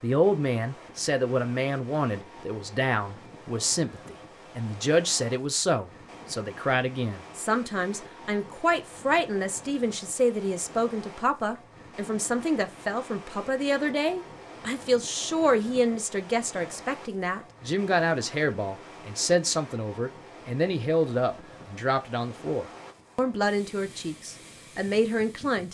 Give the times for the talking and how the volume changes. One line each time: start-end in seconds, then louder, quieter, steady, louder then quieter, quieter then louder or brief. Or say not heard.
0.0-25.6 steady.